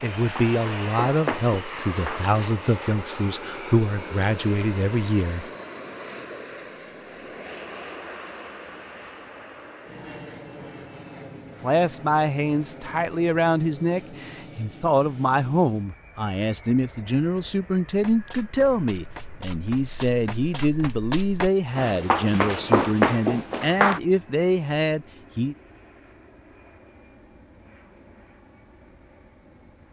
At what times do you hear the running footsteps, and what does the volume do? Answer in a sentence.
You can hear the running footsteps briefly from 0.0 to 2.4 s; and from 17.9 to 24.0 s, getting louder.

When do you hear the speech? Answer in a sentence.
You can hear the speech from 0.0 to 5.5 s and from 11.6 to 25.6 s.